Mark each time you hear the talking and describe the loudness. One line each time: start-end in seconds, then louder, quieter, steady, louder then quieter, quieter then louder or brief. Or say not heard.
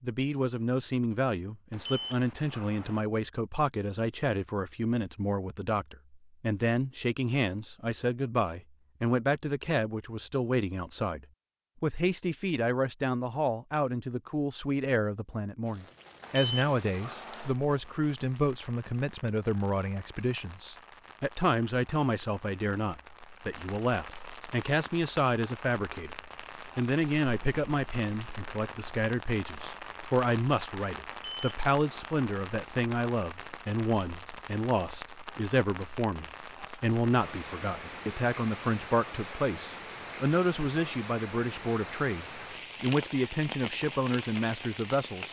0.0-26.1 steady
26.8-45.2 steady.